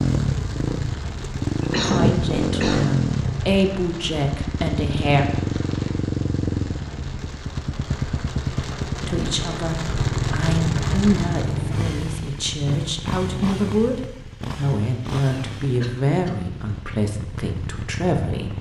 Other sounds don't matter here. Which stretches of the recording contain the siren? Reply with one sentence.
You can't hear the siren here.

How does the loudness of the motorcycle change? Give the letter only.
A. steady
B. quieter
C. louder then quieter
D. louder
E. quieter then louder
B.